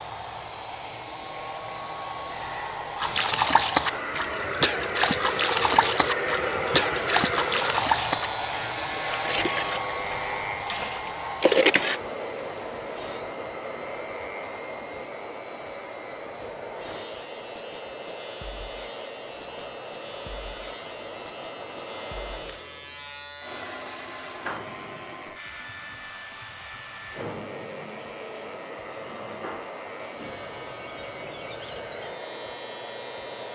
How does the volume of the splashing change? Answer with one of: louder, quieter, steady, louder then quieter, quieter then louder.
quieter then louder.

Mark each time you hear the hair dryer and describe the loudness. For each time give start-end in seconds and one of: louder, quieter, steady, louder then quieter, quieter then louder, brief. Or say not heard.
0.0-33.5 quieter.